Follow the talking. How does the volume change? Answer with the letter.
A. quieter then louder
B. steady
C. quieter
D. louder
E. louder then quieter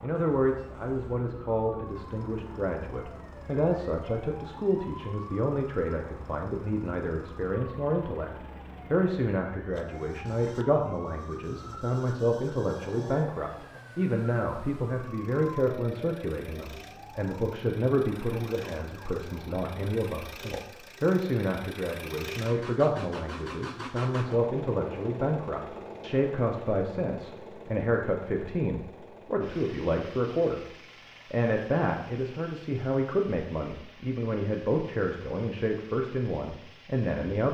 B.